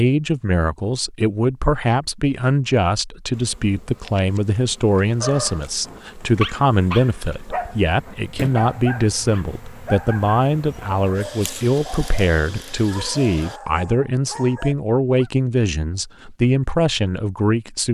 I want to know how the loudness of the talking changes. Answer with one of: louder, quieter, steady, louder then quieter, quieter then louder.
steady.